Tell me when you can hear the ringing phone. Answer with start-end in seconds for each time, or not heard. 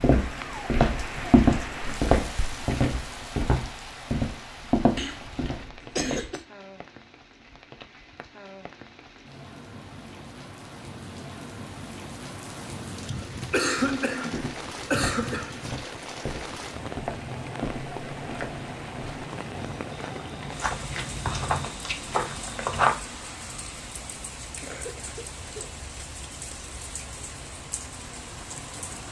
not heard.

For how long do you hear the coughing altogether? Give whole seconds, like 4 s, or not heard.
5 s.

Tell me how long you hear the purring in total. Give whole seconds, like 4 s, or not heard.
not heard.